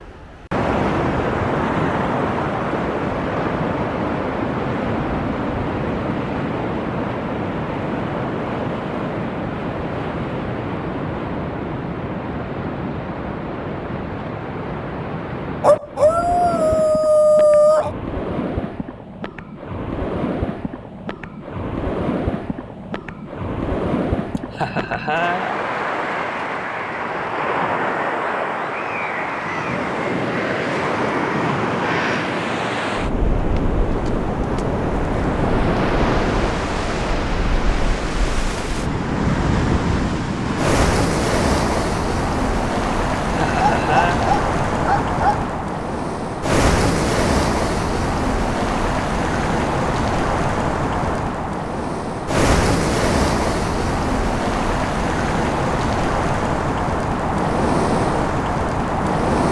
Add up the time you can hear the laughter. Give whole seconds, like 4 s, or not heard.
2 s.